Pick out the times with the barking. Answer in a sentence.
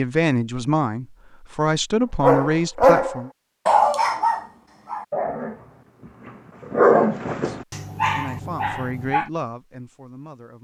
You can hear the barking from 2.2 to 9.2 s.